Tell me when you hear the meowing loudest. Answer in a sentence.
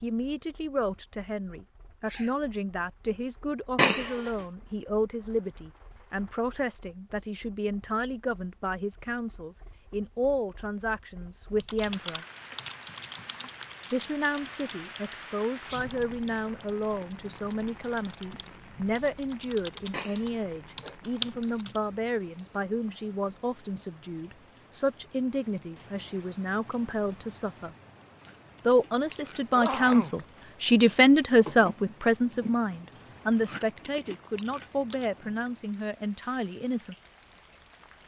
The volume of the meowing peaks at 4 seconds.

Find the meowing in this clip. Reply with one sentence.
The meowing can be heard from 3.8 to 4.3 s and from 19.9 to 20.9 s.